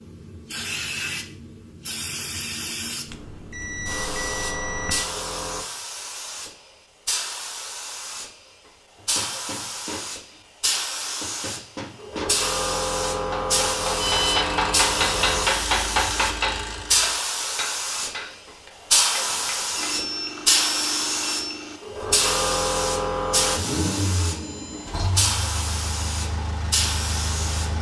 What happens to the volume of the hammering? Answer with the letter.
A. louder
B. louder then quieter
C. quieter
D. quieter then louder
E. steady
B.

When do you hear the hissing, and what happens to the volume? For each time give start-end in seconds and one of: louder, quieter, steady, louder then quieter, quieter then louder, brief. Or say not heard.
0.0-27.7 louder.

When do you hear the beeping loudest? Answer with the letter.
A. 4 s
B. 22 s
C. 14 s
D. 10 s
C.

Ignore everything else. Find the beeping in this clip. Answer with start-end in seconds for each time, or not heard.
3.1-5.0, 13.9-14.4, 19.8-21.8.